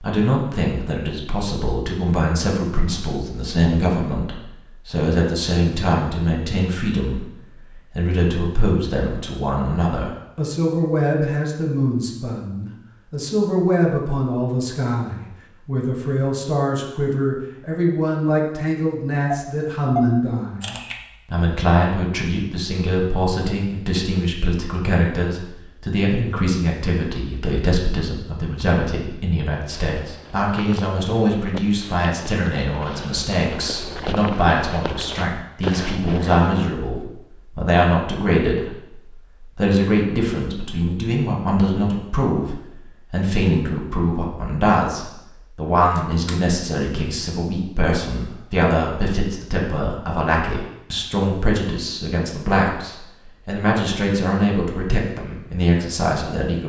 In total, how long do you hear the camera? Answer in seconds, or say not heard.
2 s.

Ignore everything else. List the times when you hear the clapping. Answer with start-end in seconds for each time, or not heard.
not heard.